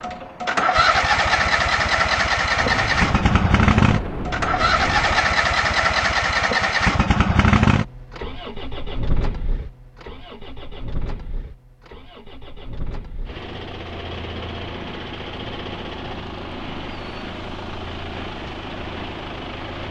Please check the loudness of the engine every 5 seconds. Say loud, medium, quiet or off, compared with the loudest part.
loud, loud, quiet, quiet.